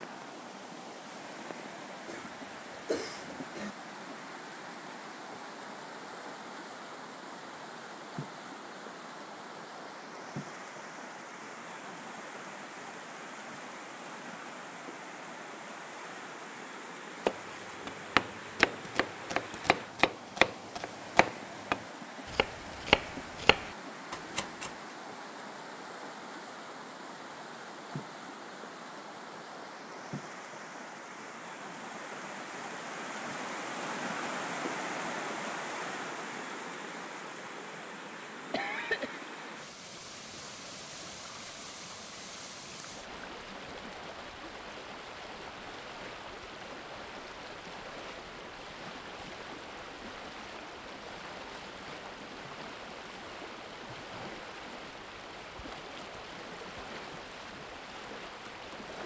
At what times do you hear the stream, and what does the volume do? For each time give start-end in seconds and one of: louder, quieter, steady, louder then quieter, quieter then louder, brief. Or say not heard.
0.0-59.0 steady.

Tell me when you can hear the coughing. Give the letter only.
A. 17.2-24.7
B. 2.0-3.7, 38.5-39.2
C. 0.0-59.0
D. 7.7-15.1
B.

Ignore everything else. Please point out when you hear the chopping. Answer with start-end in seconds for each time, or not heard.
17.2-24.7.